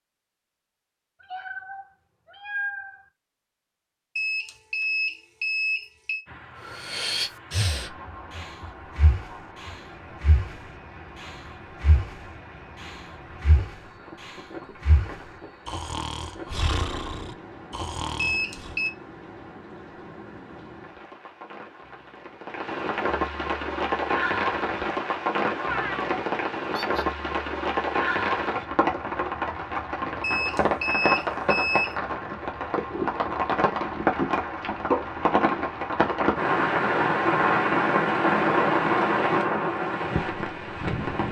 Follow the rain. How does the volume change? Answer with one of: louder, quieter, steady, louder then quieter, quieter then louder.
louder.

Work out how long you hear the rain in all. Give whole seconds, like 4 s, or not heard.
35 s.